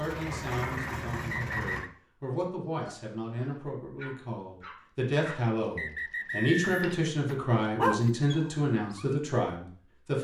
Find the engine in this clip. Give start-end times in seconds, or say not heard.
0.0-1.9.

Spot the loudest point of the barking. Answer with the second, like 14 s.
8 s.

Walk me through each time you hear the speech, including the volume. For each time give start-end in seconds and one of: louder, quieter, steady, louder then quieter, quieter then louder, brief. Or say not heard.
0.0-10.1 louder.